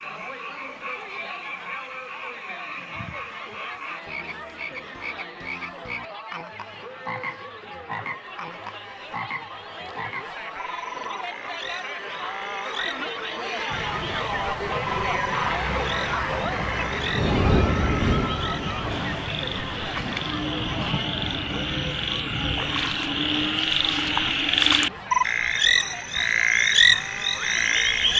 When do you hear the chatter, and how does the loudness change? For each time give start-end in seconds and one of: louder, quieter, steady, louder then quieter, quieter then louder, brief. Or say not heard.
0.0-28.1 louder then quieter.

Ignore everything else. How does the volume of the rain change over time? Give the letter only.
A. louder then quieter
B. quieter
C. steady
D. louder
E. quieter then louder
A.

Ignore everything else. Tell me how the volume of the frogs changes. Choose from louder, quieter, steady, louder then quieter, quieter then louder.
louder.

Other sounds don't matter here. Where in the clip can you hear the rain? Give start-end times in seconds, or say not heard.
13.7-28.1.